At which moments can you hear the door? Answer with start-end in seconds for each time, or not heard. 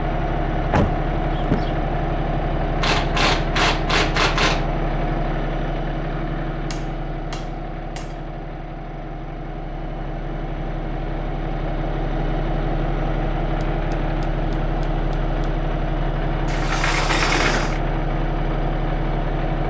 0.7-1.8, 16.4-17.8.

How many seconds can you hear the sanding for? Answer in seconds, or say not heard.
not heard.